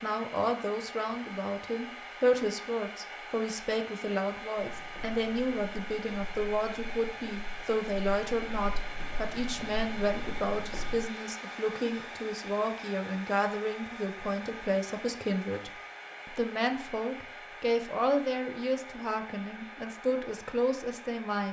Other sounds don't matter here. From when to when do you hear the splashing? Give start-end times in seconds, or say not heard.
not heard.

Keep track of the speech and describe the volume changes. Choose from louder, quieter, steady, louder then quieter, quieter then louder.
steady.